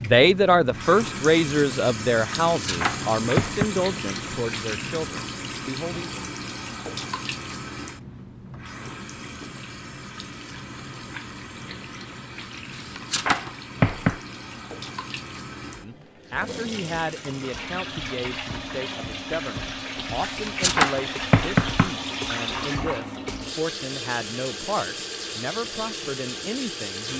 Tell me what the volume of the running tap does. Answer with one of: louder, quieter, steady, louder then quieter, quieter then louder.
quieter then louder.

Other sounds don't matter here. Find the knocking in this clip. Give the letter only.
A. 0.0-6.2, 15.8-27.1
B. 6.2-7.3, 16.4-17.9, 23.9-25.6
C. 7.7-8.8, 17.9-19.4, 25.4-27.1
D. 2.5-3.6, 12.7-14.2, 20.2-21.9
D.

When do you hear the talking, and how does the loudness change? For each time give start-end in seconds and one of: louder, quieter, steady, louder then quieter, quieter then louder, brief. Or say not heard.
0.0-6.2 quieter
15.8-27.1 steady.